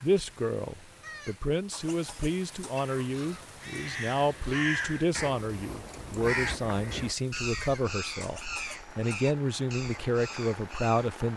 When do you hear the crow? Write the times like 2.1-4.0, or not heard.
2.7-11.1.